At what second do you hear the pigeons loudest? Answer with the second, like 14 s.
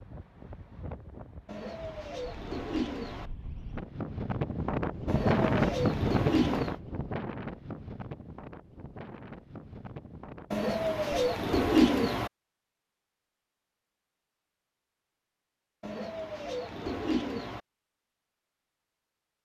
12 s.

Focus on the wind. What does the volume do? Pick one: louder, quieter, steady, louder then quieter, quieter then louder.
louder then quieter.